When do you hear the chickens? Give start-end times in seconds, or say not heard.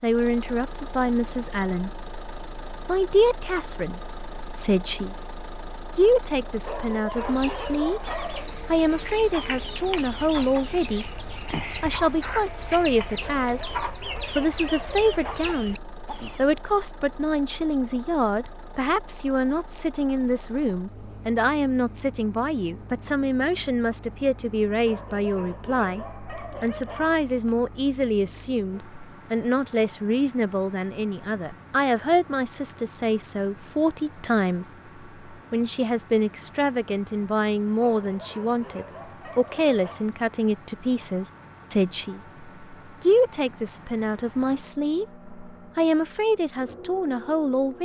7.1-16.4.